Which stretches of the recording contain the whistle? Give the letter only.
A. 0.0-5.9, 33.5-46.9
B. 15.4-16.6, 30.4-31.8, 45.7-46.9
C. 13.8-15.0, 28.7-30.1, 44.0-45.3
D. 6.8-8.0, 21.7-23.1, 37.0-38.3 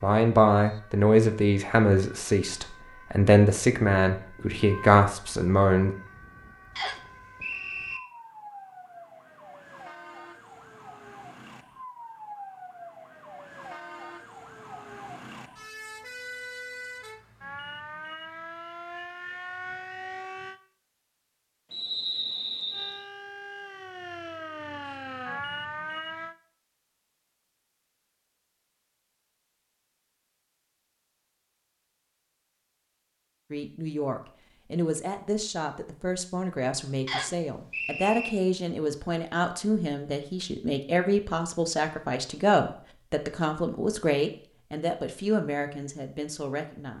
D.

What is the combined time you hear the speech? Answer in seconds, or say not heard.
19 s.